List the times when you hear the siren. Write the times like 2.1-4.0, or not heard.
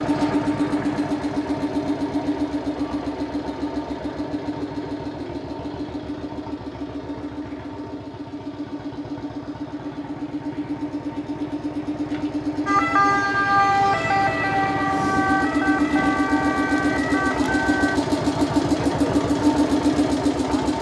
12.7-18.0.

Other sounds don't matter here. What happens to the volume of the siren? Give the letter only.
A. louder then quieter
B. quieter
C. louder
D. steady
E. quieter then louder
B.